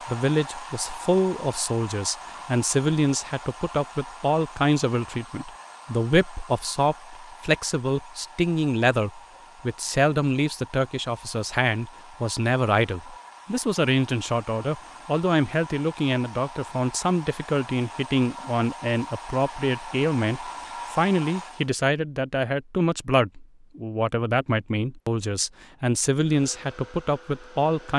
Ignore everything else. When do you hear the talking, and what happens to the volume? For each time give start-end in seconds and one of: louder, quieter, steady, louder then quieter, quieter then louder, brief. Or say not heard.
0.1-27.9 steady.